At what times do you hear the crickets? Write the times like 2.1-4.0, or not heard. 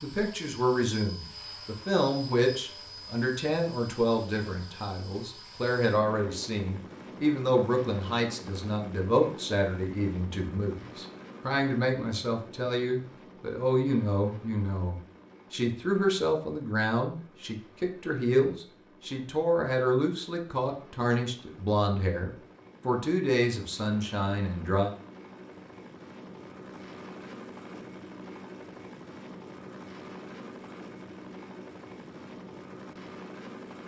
not heard.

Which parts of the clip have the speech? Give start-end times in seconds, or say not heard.
0.0-24.9.